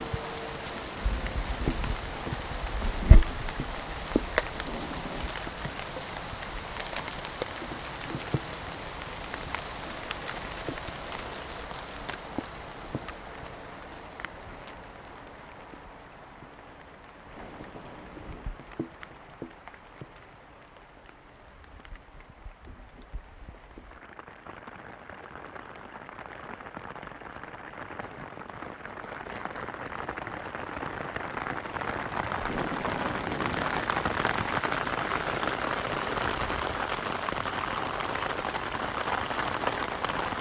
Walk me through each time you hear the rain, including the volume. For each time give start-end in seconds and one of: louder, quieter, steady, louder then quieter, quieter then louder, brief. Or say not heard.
0.0-40.3 quieter then louder.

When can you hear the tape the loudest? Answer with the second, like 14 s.
33 s.